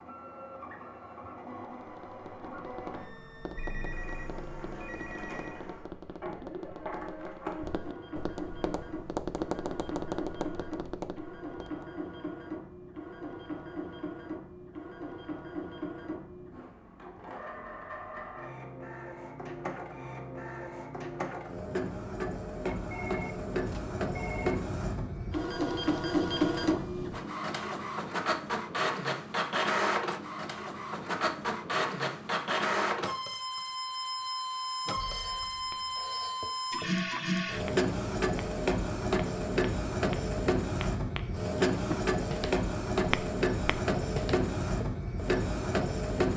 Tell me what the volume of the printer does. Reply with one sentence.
The volume of the printer goes up.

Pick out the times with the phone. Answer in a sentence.
The phone can be heard from 3.5 to 5.7 s, from 22.6 to 24.6 s and from 35.0 to 36.4 s.